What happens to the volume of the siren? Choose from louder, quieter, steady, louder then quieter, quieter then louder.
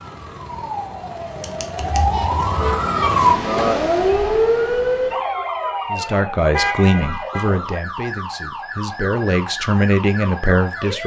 louder then quieter.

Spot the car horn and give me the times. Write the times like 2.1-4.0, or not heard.
1.8-2.8, 6.5-7.5.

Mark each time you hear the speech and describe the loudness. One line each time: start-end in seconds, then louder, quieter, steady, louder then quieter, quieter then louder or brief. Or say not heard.
5.9-11.0 quieter then louder.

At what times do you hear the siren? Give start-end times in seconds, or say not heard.
0.0-11.0.